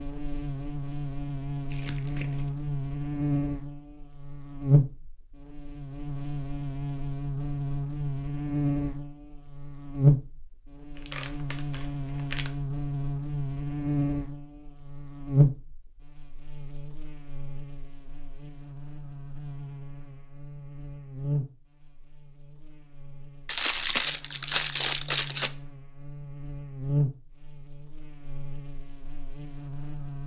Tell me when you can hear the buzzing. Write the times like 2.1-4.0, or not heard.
0.0-30.2.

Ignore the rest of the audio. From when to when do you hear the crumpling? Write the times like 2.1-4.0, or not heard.
1.7-2.5, 10.9-12.5, 23.4-25.5.